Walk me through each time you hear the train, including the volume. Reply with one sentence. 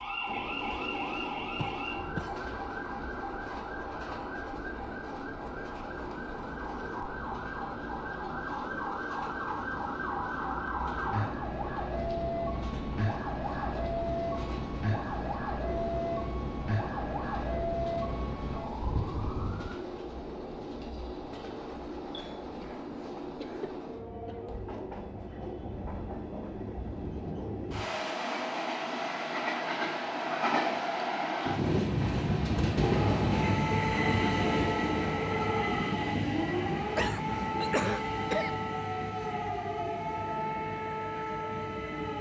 You can hear the train from 0.0 to 42.1 s, getting louder.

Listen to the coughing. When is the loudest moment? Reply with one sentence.
The volume of the coughing peaks at 38 seconds.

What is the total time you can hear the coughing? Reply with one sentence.
You can hear the coughing for 5 seconds altogether.